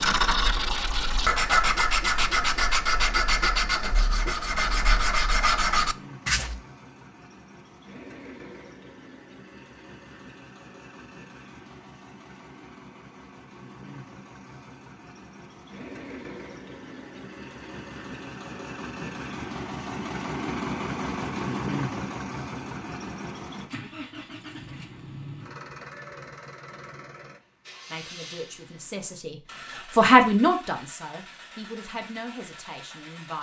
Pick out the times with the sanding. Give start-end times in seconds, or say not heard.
0.0-6.6.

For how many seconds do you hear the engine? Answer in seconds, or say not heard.
33 s.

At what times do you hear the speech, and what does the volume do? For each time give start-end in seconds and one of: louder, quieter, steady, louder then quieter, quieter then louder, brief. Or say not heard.
27.9-33.3 louder then quieter.